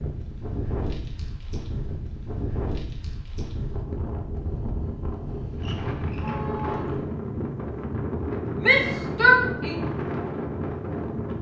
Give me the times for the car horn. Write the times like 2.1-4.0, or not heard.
5.6-7.0.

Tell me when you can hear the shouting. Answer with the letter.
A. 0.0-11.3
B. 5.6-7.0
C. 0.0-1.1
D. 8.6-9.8
D.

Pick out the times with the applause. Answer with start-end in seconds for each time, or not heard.
not heard.